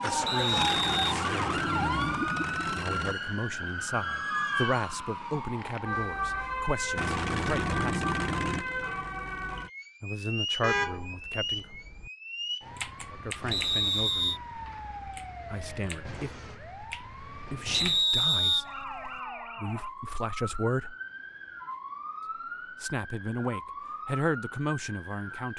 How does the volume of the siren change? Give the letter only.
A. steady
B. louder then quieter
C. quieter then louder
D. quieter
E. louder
D.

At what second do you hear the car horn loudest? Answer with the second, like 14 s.
11 s.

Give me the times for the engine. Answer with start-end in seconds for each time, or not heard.
0.0-3.1, 7.0-9.7.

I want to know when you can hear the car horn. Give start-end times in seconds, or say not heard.
10.6-12.1.